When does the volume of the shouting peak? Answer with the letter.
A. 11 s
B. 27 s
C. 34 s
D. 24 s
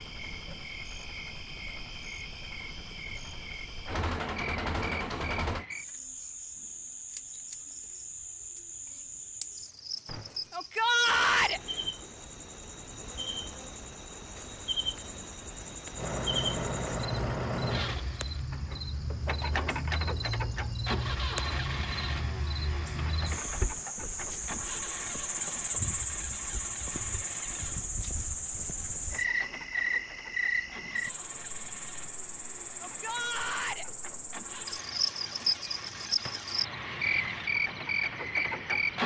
A.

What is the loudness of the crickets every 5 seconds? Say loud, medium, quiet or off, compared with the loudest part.
medium, medium, medium, medium, medium, loud, medium, loud.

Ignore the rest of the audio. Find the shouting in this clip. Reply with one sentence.
The shouting can be heard from 10.5 to 11.6 s and from 32.8 to 33.9 s.